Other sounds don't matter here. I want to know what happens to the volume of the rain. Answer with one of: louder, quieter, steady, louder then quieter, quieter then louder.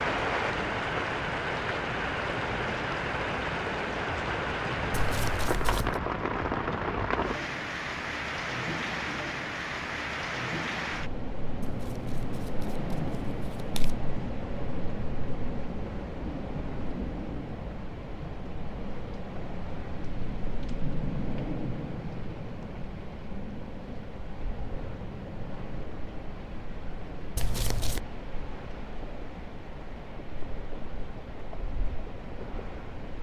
quieter.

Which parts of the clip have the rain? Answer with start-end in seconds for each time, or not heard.
0.0-33.1.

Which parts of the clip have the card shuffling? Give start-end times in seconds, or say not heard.
4.9-6.0, 11.6-13.9, 27.4-28.0.